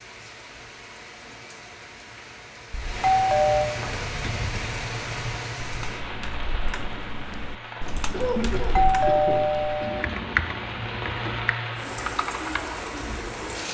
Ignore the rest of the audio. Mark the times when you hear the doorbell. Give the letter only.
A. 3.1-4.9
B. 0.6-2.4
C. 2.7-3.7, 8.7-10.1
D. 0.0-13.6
C.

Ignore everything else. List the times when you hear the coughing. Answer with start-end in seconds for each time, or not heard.
8.1-9.9.